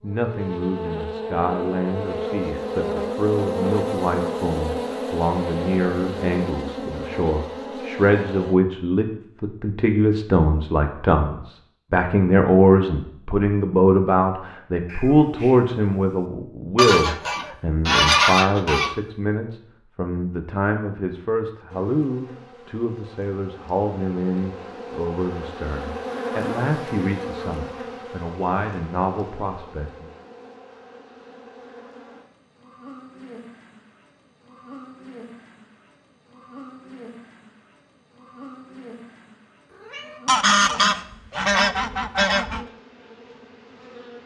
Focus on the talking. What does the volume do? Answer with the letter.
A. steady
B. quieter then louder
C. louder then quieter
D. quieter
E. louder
C.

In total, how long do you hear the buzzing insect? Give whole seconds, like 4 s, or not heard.
31 s.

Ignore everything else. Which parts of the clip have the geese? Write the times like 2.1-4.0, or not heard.
16.8-18.9, 40.2-42.6.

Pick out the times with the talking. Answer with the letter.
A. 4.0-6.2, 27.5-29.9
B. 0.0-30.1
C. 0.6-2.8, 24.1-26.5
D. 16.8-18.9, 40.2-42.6
B.